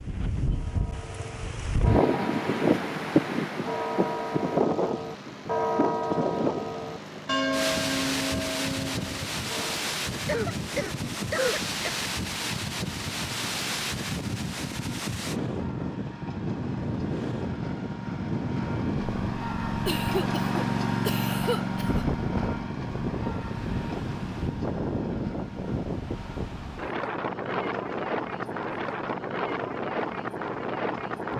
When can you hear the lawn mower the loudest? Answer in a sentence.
The volume of the lawn mower peaks at 21 seconds.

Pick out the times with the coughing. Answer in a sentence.
The coughing can be heard from 10.2 to 11.9 s and from 19.9 to 22.1 s.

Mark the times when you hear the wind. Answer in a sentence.
The wind can be heard from 0.0 to 31.3 s.